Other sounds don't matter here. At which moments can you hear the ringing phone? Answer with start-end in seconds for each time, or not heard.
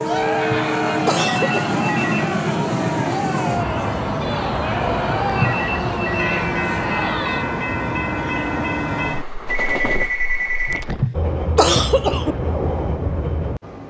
1.2-2.4, 5.3-6.5, 9.4-10.8.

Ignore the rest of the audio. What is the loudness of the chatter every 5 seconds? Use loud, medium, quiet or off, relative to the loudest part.
loud, loud, off.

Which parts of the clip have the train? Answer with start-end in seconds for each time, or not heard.
0.0-13.8.